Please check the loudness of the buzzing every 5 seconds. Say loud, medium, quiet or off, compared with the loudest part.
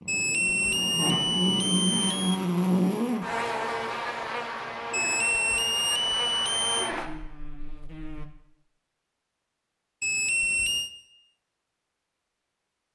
loud, medium, off.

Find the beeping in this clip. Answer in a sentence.
You can hear the beeping from 0.1 to 2.4 s, from 4.9 to 6.9 s and from 10.0 to 10.9 s.